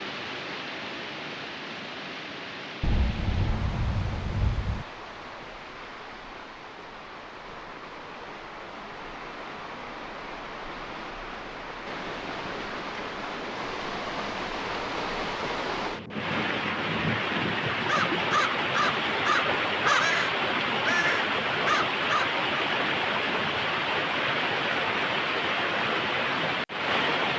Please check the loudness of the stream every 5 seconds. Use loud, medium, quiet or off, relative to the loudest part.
medium, quiet, medium, loud, loud, loud.